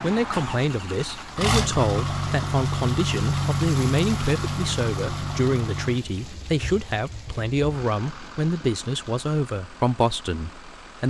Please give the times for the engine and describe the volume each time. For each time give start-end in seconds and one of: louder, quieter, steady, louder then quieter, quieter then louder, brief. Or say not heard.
0.0-11.0 quieter.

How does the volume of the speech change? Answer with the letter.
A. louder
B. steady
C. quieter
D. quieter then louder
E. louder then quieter
B.